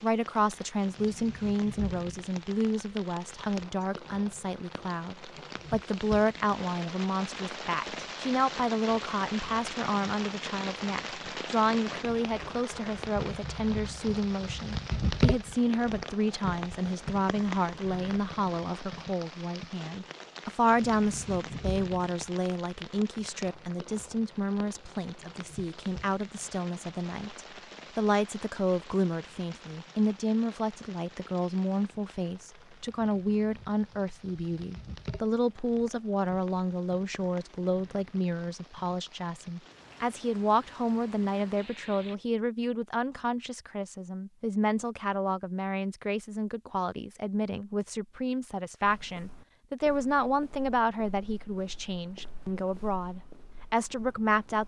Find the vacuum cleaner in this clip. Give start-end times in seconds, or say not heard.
not heard.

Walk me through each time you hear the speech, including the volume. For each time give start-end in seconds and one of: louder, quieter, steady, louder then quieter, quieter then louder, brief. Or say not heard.
0.0-54.6 steady.